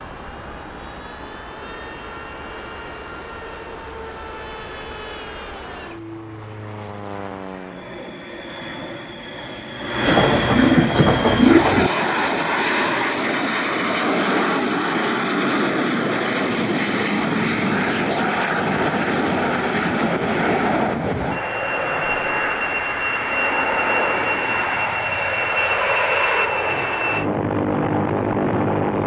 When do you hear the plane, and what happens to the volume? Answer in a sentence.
The plane can be heard from 0.0 to 29.0 s, getting louder.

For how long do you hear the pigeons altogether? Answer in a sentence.
You can hear the pigeons for 2 seconds altogether.